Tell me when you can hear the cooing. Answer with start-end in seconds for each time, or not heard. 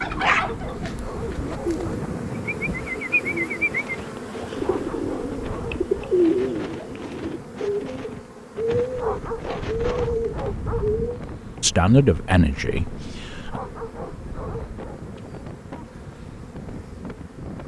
0.0-11.2.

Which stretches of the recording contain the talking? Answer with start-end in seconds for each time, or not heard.
11.6-13.6.